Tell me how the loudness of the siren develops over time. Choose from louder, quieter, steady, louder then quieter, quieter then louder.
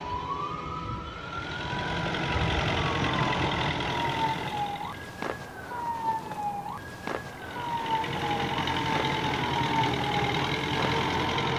steady.